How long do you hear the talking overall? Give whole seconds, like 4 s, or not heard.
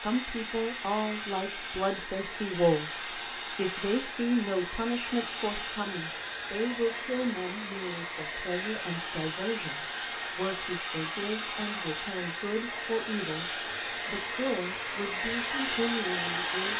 16 s.